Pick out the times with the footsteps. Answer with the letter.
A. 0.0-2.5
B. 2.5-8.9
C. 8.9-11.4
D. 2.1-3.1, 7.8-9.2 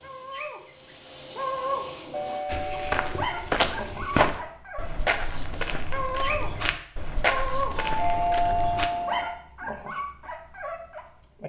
B.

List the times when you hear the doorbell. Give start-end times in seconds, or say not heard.
2.1-3.1, 7.8-9.2.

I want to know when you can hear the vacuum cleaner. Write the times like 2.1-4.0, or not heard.
0.0-2.5.